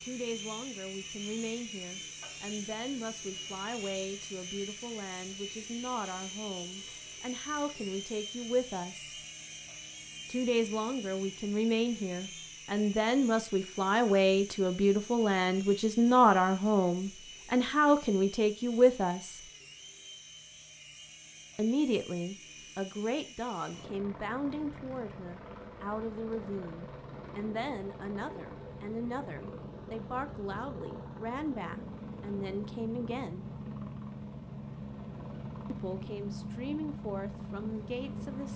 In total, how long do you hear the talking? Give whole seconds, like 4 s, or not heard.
33 s.